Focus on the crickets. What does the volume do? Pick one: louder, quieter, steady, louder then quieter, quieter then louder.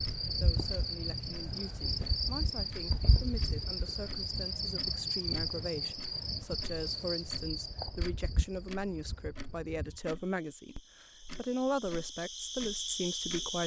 quieter then louder.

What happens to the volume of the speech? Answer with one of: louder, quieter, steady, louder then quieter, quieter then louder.
louder.